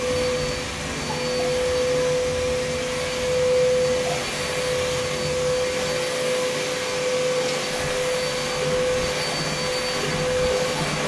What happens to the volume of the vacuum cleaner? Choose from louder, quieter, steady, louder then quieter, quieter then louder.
steady.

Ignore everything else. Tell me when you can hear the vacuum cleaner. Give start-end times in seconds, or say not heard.
0.0-11.0.